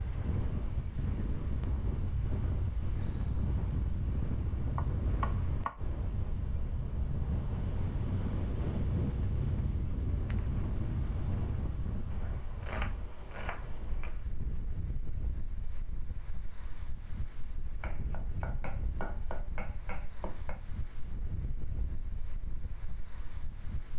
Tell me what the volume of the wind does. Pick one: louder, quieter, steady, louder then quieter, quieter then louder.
quieter.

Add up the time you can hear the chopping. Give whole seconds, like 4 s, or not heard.
6 s.